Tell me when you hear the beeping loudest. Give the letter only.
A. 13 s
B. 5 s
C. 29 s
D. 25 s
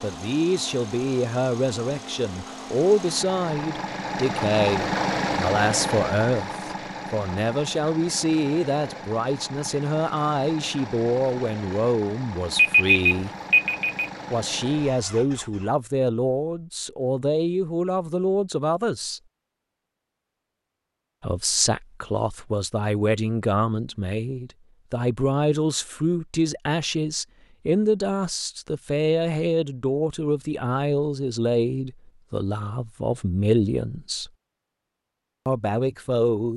A.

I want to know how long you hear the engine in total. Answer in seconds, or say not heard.
16 s.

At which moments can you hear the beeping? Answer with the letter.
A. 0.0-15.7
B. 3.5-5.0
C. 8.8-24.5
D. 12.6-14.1
D.